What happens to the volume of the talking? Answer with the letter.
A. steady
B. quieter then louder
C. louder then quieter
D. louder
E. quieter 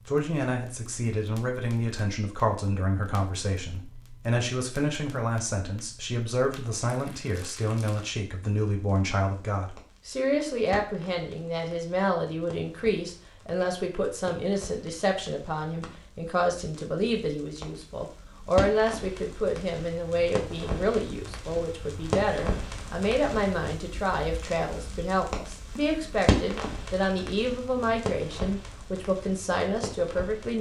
A.